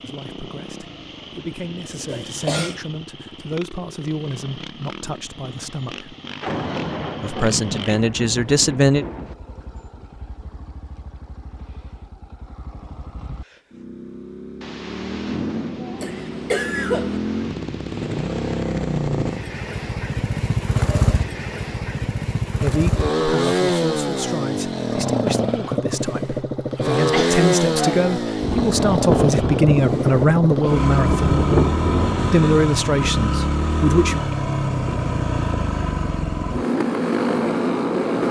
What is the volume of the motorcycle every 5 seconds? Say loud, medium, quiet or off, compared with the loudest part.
quiet, quiet, quiet, medium, loud, loud, loud, loud.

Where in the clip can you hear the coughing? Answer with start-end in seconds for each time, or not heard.
2.1-2.8, 16.0-17.2, 26.9-28.1.